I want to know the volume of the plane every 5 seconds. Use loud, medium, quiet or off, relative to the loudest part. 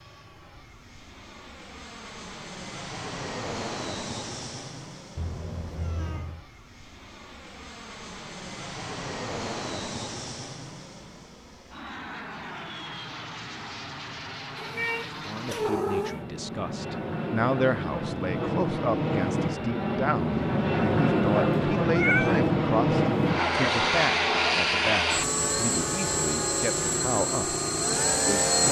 quiet, quiet, quiet, medium, loud, loud.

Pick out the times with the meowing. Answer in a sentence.
You can hear the meowing from 5.2 to 6.5 s, from 14.6 to 16.2 s and from 21.9 to 22.4 s.